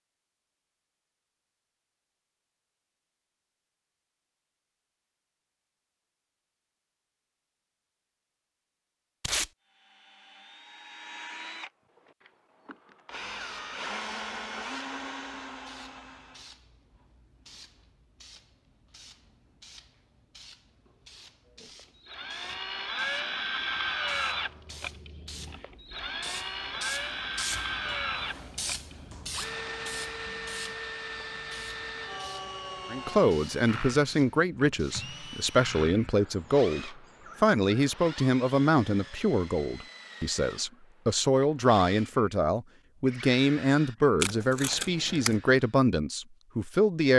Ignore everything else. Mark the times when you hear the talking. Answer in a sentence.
The talking can be heard from 32.9 to 47.1 s.